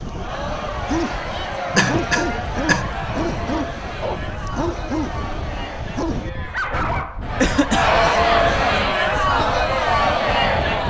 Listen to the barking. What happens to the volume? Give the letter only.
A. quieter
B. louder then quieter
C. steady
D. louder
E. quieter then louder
C.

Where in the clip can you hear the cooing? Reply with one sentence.
You can't hear the cooing here.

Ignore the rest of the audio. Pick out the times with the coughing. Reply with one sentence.
The coughing can be heard from 1.8 to 3.0 s and from 7.3 to 8.1 s.